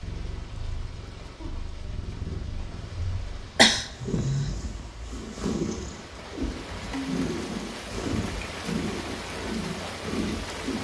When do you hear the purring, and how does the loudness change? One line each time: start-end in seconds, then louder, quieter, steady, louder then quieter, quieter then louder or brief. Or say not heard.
0.0-10.8 louder.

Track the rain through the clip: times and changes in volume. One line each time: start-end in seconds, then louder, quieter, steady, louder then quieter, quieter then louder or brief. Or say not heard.
0.0-10.8 louder.